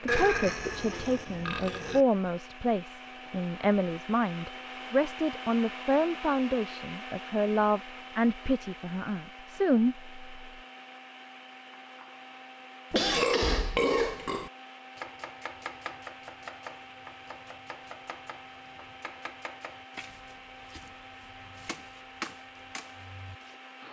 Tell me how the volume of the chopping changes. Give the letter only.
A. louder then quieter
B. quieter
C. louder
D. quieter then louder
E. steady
D.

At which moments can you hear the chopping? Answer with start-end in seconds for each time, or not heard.
14.9-23.6.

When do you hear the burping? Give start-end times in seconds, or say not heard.
0.1-2.0, 12.9-14.5.